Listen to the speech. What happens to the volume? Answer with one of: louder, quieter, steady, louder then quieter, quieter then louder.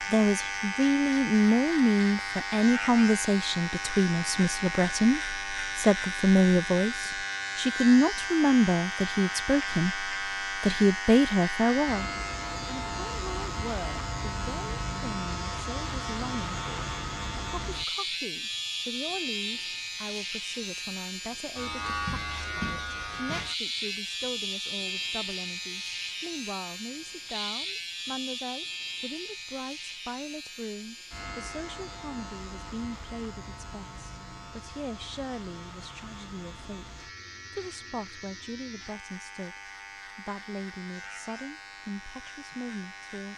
quieter.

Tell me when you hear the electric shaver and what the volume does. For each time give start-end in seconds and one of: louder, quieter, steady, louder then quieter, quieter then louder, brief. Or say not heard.
0.0-43.3 quieter.